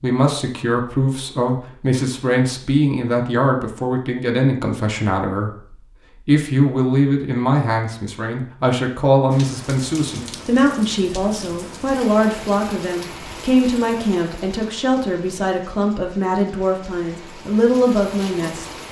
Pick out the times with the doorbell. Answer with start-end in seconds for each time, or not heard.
not heard.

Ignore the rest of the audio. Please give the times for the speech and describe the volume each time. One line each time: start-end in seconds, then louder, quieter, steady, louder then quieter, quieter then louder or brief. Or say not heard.
0.0-18.6 steady.